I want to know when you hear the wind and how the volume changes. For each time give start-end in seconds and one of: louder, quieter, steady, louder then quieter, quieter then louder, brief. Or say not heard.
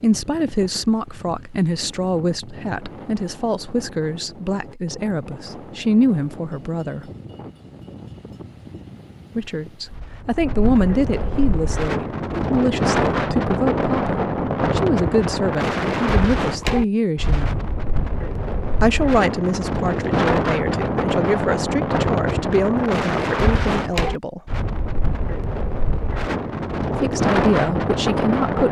0.0-28.6 louder.